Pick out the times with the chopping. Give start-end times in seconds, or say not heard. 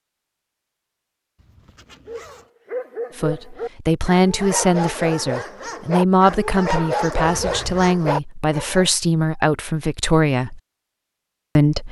not heard.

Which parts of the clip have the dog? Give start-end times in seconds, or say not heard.
2.0-8.9.